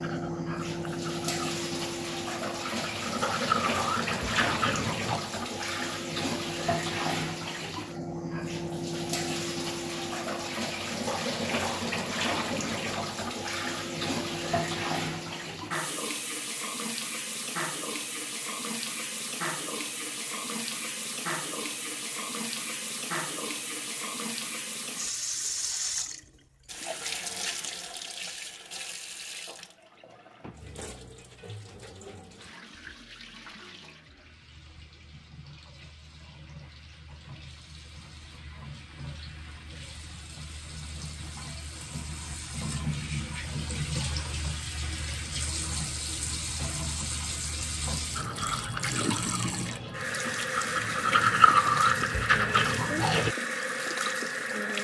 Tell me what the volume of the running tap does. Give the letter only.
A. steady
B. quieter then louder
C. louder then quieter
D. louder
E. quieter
B.